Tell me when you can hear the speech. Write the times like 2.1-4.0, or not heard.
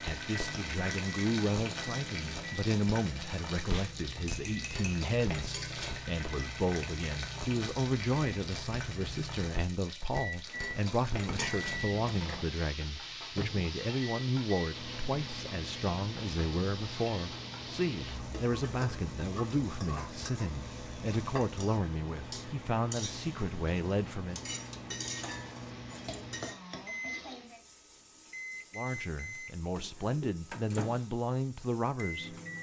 0.0-24.4, 28.8-32.4.